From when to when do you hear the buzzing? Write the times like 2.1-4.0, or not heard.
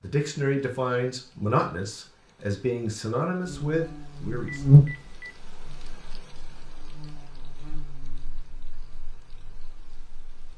3.5-10.5.